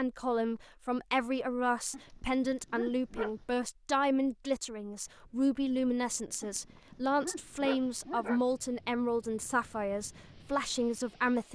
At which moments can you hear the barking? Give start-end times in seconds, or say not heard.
1.9-3.6, 6.4-8.4.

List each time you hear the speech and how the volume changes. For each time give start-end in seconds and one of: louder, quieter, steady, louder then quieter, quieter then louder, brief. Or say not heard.
0.0-11.5 steady.